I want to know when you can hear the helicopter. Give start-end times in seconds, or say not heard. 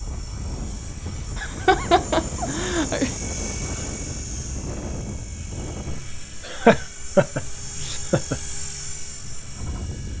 0.0-10.1.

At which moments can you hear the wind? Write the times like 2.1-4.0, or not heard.
0.0-10.1.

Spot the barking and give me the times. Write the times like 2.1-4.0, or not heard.
not heard.